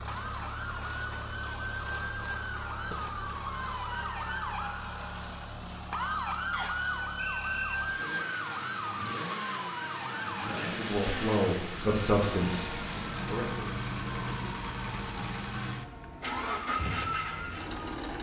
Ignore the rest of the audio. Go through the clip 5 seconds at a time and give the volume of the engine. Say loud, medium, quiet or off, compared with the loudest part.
medium, medium, loud, loud.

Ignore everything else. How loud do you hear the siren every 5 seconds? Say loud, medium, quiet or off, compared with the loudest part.
loud, loud, medium, medium.